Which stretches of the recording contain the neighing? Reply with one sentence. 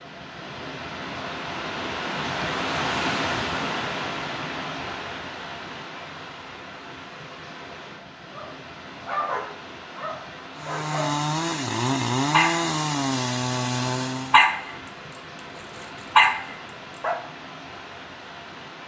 The neighing can't be heard in this clip.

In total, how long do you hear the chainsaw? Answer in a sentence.
The chainsaw can be heard for 4 seconds in total.